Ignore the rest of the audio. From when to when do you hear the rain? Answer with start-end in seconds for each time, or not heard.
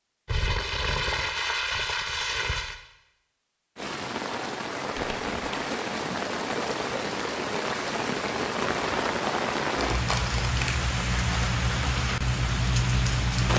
3.8-13.5.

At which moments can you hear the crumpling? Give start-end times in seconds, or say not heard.
0.2-2.8, 5.0-5.5, 9.8-10.8.